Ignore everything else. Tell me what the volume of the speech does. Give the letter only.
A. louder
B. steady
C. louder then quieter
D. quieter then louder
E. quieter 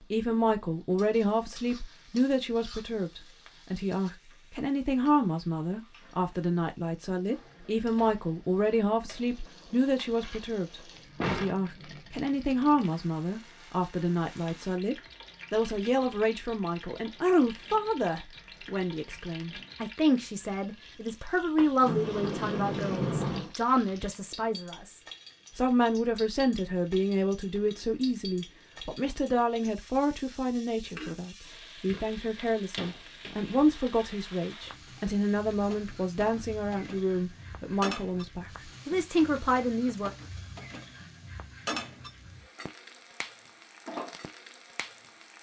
B.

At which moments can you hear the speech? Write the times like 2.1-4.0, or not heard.
0.1-40.1.